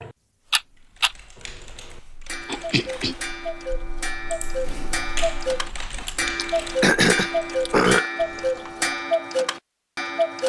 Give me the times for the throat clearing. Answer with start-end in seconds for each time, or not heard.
2.3-3.1, 6.0-8.1.